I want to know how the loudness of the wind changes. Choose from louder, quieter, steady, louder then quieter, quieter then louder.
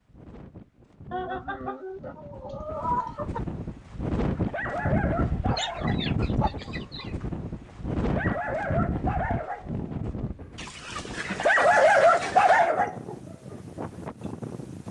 louder then quieter.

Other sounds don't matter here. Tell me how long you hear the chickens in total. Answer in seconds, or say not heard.
6 s.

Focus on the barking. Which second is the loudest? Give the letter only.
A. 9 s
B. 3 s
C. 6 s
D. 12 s
D.